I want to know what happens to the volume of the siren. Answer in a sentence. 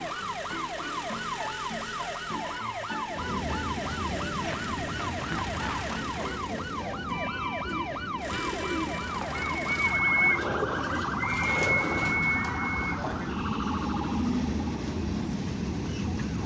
The loudness of the siren stays about the same.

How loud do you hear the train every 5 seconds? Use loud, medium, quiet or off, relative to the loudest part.
loud, medium, loud, loud.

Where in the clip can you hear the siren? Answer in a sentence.
You can hear the siren from 0.0 to 16.4 s.